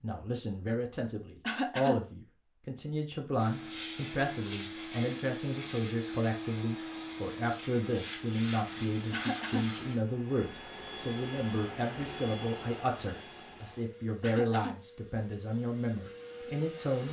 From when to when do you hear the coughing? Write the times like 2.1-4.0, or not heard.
1.4-1.9, 9.1-9.7, 14.2-14.8.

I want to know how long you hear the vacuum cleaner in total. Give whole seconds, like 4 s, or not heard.
14 s.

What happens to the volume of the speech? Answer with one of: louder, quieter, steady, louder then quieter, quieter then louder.
steady.